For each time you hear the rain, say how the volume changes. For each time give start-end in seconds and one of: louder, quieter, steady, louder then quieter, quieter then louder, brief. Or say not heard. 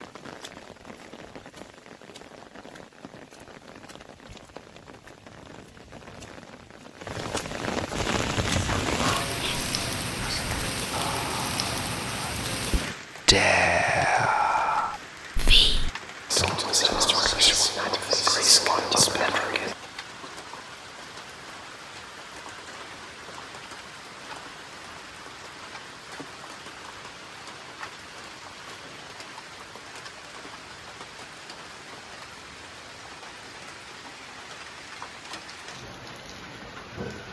0.0-37.2 louder then quieter.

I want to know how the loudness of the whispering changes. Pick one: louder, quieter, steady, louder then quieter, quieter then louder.
louder.